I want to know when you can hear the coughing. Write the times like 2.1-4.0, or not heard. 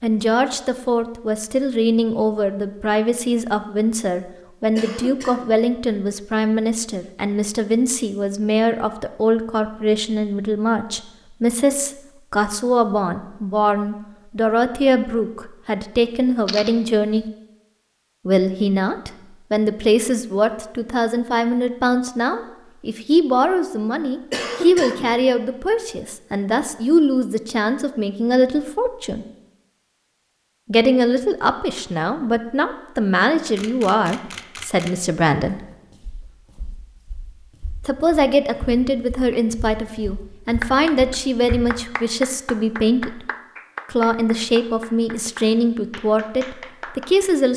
4.8-5.6, 24.3-25.1.